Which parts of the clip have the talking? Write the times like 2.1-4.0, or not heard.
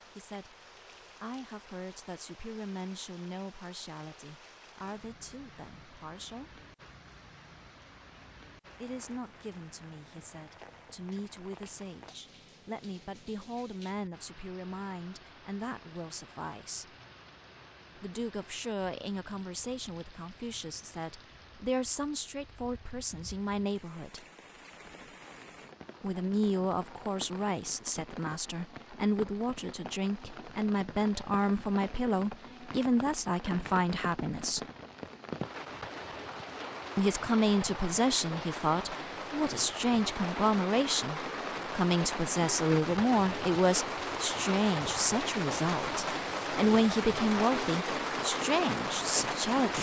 0.1-0.6, 1.2-6.6, 8.8-16.9, 17.9-24.2, 26.0-34.6, 37.0-49.7.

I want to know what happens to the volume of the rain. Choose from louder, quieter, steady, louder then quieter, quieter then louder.
louder.